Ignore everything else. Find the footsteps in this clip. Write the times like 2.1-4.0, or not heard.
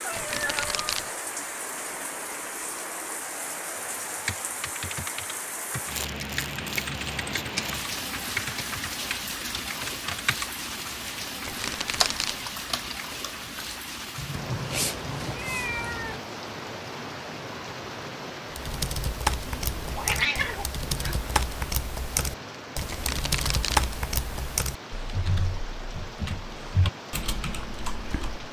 not heard.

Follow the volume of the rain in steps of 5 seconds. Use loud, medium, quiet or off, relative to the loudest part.
loud, loud, loud, loud, medium, medium.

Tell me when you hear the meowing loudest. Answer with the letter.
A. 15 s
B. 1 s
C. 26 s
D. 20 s
D.